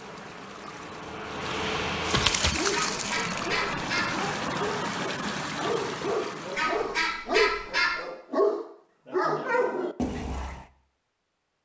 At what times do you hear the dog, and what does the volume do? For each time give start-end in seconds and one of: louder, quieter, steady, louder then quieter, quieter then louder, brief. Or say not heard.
2.5-10.7 louder.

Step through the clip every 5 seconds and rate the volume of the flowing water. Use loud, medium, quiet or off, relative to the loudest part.
loud, loud, off.